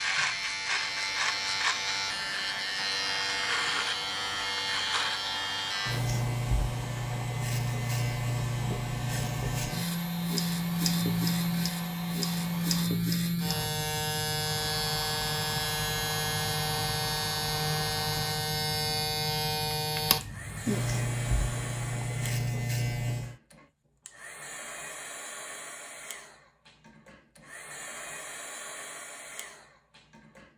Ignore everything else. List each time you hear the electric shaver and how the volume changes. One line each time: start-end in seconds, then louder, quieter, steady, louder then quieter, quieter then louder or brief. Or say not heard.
0.0-23.4 steady.